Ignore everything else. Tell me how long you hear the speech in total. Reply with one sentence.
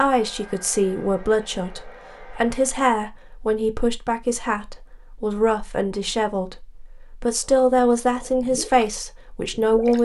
The speech can be heard for 10 seconds in total.